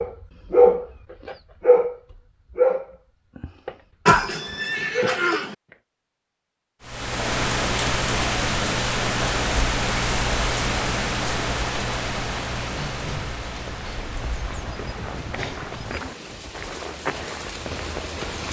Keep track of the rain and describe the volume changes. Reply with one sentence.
The volume of the rain goes down.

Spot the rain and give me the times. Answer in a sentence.
The rain can be heard from 6.8 to 18.4 s.